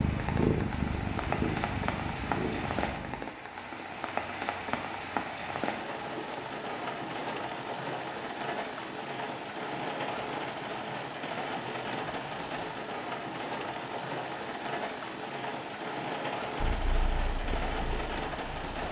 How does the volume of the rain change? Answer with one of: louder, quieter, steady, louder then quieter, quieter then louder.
steady.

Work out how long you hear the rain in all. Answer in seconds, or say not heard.
19 s.